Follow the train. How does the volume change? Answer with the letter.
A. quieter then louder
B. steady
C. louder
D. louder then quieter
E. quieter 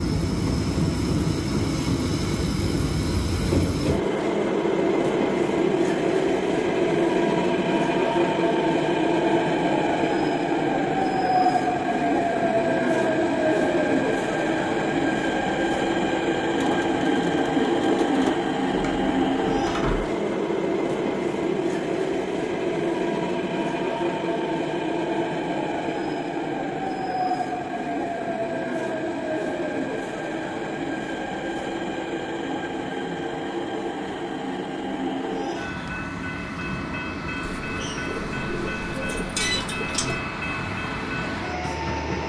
E.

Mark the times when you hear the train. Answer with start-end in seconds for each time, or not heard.
0.0-42.2.